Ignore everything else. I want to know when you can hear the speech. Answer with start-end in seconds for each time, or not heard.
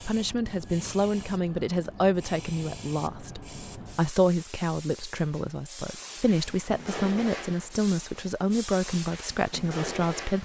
0.1-10.4.